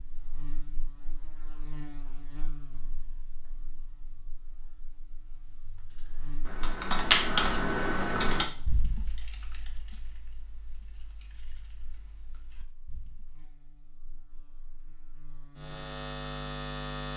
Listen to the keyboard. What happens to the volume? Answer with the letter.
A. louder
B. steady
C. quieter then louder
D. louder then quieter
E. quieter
E.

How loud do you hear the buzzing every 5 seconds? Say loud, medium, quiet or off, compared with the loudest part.
quiet, quiet, quiet, loud.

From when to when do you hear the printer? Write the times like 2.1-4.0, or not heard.
not heard.